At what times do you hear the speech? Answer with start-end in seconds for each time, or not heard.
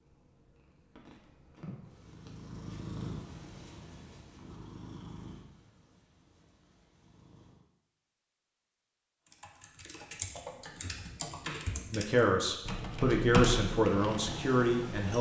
11.9-15.1.